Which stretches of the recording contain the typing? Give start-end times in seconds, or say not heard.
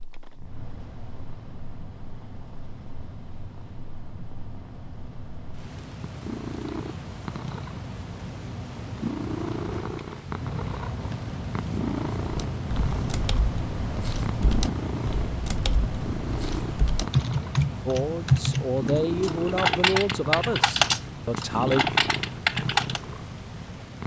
12.3-23.0.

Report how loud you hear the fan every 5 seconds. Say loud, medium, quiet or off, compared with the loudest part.
medium, medium, loud, loud, medium.